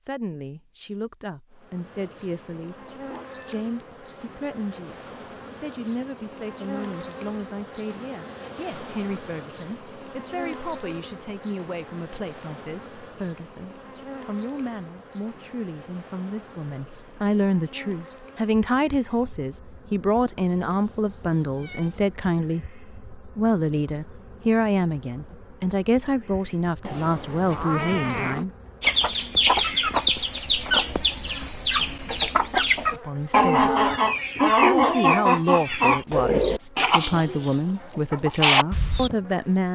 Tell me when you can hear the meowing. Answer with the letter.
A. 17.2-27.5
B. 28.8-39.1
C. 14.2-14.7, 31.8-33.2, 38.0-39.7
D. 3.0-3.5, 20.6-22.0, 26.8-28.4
D.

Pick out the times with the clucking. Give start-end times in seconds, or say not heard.
28.8-39.1.